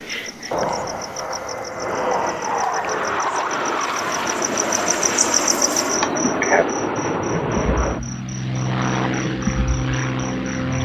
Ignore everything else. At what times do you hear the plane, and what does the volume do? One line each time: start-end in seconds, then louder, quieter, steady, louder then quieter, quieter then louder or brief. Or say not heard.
0.0-10.7 steady.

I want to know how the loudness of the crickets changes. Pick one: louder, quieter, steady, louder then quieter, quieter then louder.
louder then quieter.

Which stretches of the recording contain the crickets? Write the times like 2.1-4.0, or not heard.
0.0-10.7.